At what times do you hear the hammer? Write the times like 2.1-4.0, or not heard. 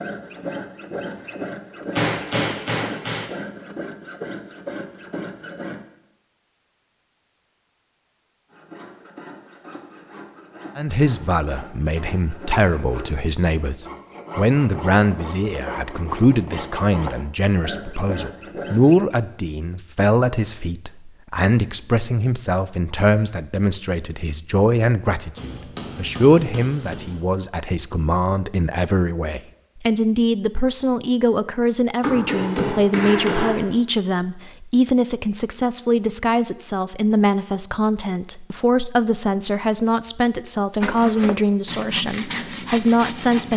1.9-3.2, 25.4-27.2, 32.0-33.5.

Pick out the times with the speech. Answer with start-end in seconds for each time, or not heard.
10.8-43.5.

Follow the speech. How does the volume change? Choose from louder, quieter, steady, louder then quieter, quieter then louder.
steady.